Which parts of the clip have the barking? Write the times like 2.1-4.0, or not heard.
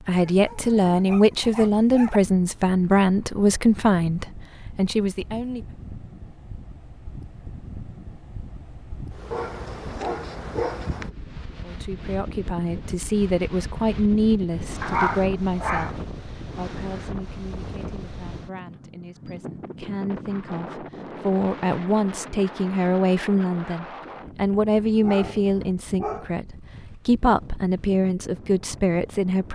0.1-2.2, 9.3-11.1, 14.8-16.0, 24.9-26.4.